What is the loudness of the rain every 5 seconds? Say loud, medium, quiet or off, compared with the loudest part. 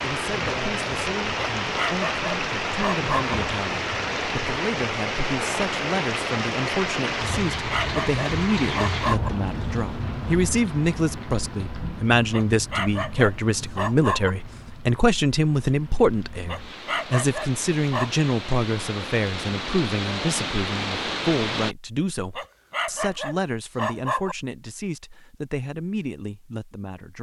loud, loud, medium, medium, loud, off.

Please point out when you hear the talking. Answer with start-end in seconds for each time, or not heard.
0.0-27.1.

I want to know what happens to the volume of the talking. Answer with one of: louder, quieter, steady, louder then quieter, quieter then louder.
louder then quieter.